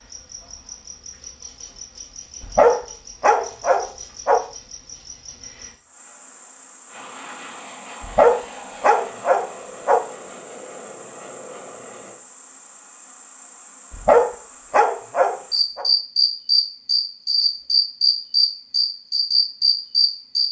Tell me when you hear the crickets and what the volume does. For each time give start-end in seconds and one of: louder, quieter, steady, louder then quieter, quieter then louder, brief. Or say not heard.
0.0-20.4 louder.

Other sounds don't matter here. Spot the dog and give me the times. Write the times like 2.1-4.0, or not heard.
2.4-4.4, 8.0-10.0, 13.9-15.8.